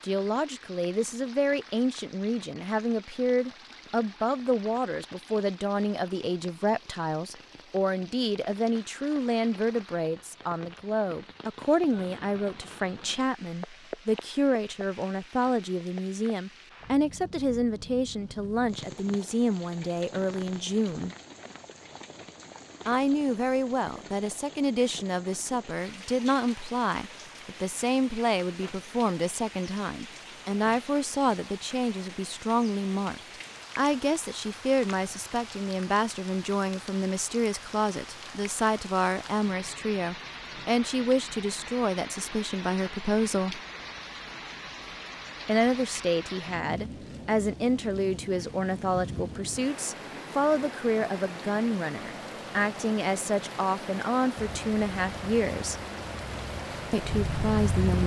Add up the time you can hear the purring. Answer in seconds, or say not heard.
4 s.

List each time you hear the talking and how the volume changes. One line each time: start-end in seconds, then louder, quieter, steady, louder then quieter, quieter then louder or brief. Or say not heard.
0.0-21.1 steady
22.9-43.6 steady
45.5-55.8 steady
56.9-58.0 brief.